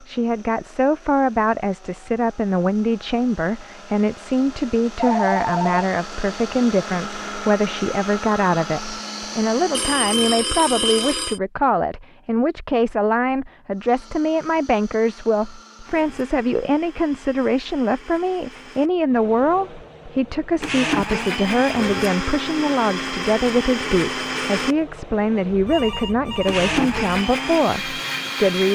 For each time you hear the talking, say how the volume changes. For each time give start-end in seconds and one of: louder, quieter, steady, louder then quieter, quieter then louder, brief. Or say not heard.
0.0-28.7 steady.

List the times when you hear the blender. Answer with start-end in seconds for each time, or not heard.
0.0-10.1, 13.7-28.7.